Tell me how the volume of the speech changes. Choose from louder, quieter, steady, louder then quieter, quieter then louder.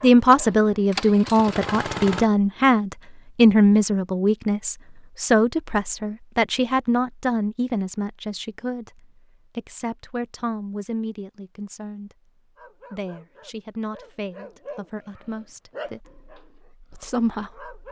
quieter.